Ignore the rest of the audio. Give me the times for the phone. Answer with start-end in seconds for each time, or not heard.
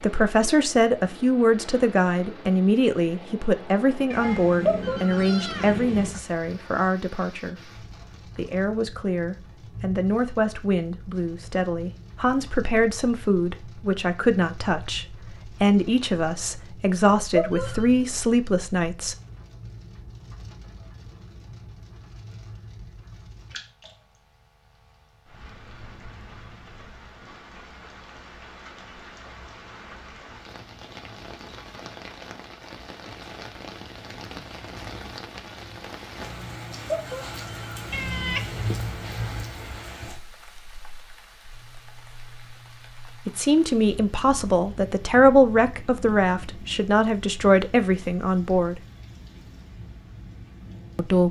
4.7-5.8, 17.4-17.9, 36.9-37.9.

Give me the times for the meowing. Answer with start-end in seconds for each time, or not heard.
4.1-6.1, 37.9-39.5.